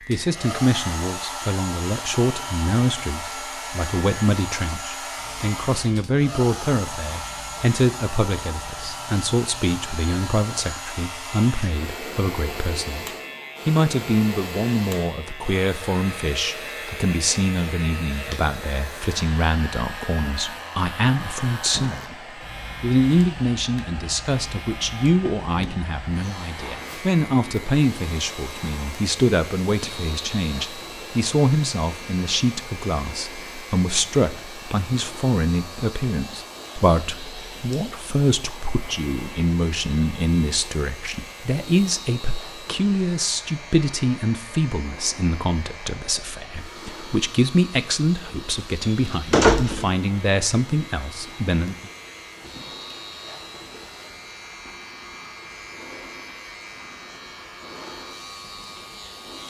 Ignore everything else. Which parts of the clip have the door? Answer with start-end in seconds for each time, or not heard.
48.8-49.9.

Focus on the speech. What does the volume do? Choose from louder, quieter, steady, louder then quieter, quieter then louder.
steady.